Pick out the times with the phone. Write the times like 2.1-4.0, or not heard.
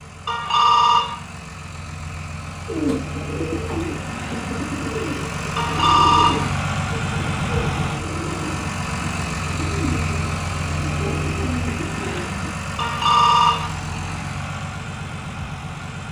0.2-1.1, 5.5-6.5, 12.8-13.7.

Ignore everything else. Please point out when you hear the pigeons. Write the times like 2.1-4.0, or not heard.
2.6-12.5.